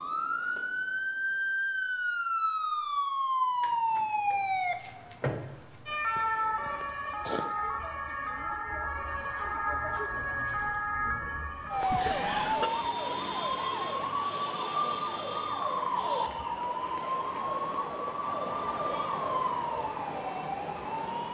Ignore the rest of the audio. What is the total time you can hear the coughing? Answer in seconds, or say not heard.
2 s.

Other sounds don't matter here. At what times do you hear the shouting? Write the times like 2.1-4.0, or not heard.
not heard.